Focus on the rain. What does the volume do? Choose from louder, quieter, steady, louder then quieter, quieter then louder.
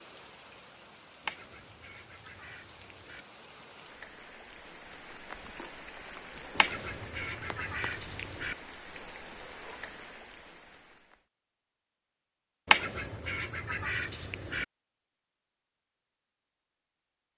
louder.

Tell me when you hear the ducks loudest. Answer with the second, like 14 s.
13 s.